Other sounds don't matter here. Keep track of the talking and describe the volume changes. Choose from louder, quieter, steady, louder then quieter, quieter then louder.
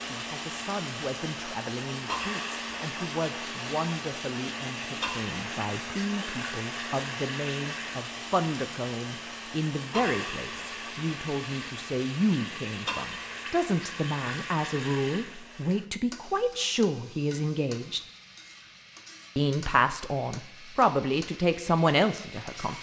louder.